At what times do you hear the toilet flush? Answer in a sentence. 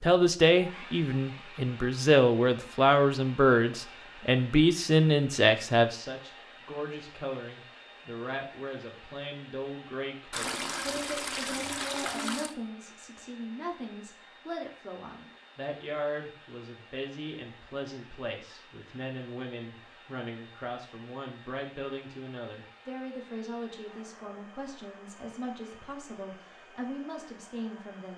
You can hear the toilet flush from 10.3 to 12.6 s.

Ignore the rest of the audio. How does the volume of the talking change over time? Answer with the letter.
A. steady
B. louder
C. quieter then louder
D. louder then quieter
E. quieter
E.